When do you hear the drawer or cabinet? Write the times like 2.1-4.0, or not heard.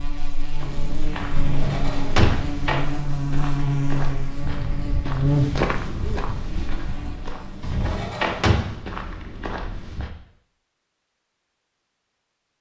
1.4-2.5, 7.6-8.8.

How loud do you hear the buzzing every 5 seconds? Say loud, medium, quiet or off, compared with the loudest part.
loud, loud, off.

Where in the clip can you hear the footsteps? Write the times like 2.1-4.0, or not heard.
0.6-10.1.